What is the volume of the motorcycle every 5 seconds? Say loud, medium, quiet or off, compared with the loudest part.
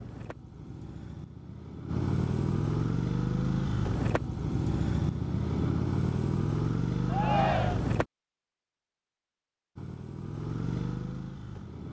loud, loud, medium.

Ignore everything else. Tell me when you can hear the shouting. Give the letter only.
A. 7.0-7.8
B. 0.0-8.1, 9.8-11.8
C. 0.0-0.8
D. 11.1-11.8
A.